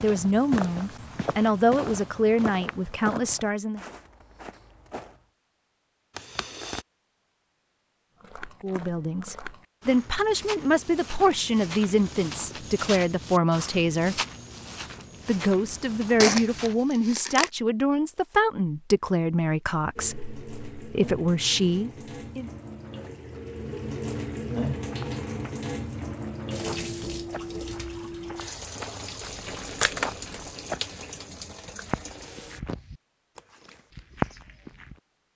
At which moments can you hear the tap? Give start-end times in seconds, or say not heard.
19.9-32.6.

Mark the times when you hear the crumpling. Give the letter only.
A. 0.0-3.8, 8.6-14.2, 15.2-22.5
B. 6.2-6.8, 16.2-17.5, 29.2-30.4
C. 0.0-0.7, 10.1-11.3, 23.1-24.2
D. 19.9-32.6
B.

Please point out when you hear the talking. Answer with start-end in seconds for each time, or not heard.
0.0-3.8, 8.6-14.2, 15.2-22.5.